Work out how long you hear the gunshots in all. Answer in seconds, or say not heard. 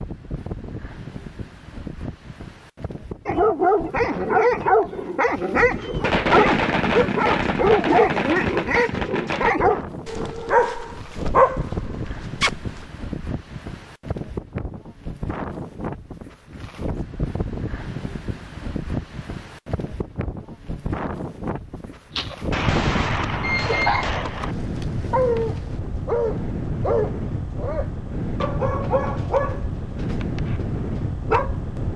6 s.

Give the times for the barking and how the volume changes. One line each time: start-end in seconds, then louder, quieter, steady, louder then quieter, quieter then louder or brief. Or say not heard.
3.2-12.8 steady
22.1-31.6 quieter.